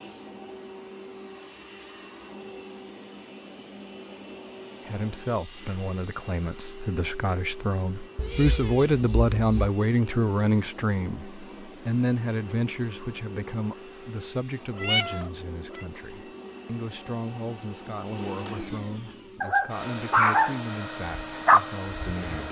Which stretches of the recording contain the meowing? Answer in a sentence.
The meowing can be heard from 8.2 to 9.7 s and from 14.8 to 15.8 s.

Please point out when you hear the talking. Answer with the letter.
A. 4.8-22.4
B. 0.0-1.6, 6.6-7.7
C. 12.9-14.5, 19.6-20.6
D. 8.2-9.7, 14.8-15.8
A.